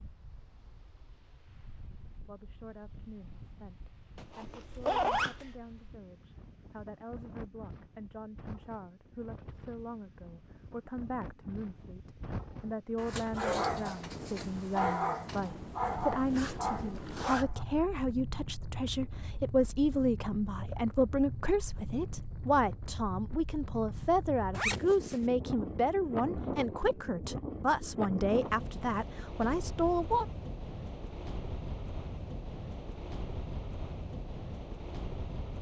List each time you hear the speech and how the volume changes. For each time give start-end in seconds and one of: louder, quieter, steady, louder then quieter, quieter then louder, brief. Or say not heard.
2.2-30.2 louder.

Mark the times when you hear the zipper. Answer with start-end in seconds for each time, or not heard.
4.2-5.5, 15.4-17.4, 24.5-25.2.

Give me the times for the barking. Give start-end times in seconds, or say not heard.
12.6-17.6.